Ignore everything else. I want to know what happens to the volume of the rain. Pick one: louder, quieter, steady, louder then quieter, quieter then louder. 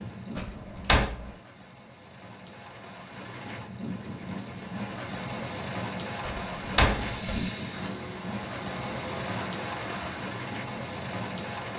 louder.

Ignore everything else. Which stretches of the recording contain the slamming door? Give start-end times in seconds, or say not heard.
0.3-1.4, 6.2-7.5.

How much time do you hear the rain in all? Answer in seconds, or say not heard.
12 s.